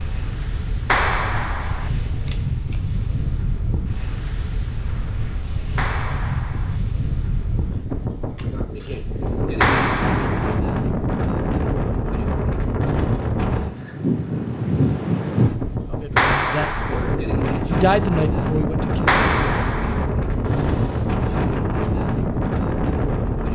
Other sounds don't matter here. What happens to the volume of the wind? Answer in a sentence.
The loudness of the wind goes up.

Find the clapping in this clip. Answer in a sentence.
You can hear the clapping from 0.8 to 1.9 s, from 5.8 to 6.8 s, from 9.6 to 10.6 s, from 16.1 to 17.1 s and from 19.1 to 20.1 s.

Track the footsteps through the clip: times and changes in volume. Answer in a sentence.
You can't hear the footsteps here.